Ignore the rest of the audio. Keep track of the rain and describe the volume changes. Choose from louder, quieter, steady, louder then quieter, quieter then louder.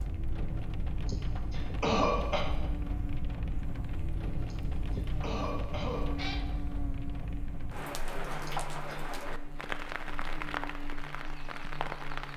steady.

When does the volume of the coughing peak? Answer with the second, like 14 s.
2 s.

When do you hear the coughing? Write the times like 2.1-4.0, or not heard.
1.1-2.5, 4.5-6.2, 8.4-9.1.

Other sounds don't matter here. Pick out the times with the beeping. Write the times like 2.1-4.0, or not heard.
not heard.